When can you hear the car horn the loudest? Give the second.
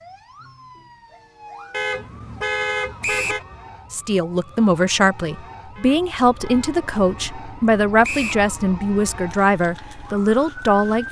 3 s.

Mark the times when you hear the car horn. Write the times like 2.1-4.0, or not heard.
1.7-3.4, 5.8-6.8.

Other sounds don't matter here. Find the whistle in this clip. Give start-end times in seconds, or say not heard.
3.0-3.5, 8.0-8.4.